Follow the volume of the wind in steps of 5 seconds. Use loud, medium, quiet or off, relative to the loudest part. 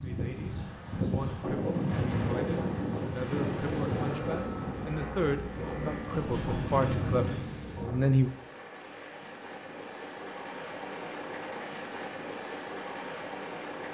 loud, loud, off.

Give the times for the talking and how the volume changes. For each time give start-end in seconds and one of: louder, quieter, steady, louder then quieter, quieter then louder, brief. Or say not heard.
0.0-8.3 louder.